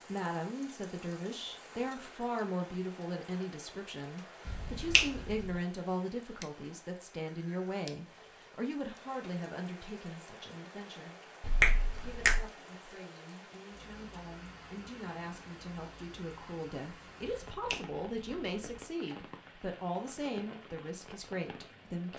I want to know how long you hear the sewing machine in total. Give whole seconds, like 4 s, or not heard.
not heard.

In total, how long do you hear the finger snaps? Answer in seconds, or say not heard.
3 s.